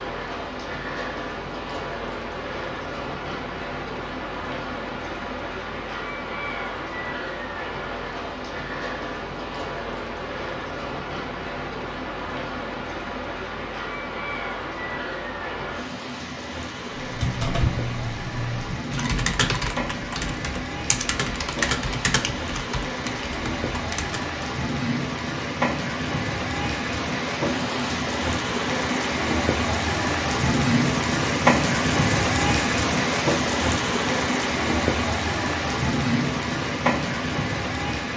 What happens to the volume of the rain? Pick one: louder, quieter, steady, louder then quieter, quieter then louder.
louder.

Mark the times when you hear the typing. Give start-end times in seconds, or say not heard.
16.9-24.4.